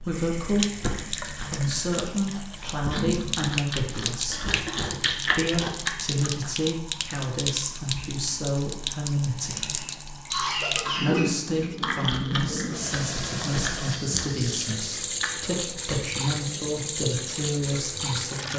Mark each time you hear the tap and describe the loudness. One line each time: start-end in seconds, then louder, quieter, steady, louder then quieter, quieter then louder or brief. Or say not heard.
0.0-18.5 steady.